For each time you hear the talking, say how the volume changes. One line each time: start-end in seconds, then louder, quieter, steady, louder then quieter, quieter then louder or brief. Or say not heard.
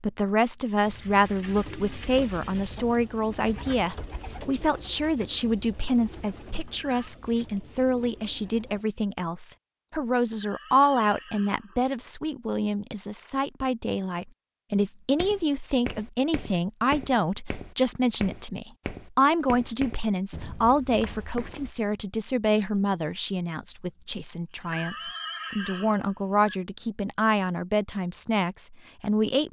0.0-29.4 steady.